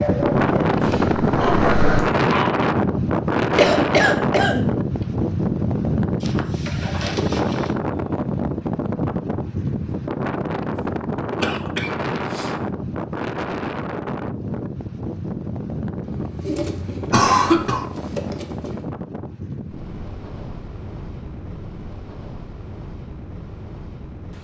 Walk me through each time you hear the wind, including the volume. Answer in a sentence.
The wind can be heard from 0.0 to 24.3 s, getting quieter.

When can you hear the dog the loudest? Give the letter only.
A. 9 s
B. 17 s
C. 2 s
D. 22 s
C.